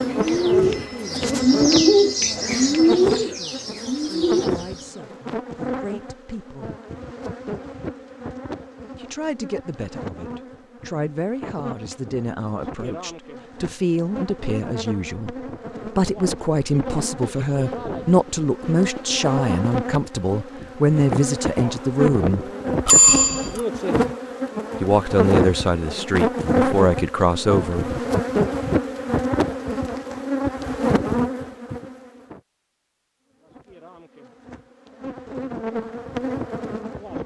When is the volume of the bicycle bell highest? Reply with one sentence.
The volume of the bicycle bell peaks at 23 seconds.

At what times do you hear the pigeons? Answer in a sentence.
The pigeons can be heard from 0.0 to 4.9 s.